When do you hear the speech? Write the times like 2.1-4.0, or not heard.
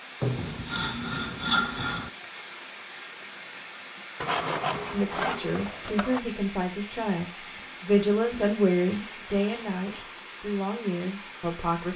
4.9-11.9.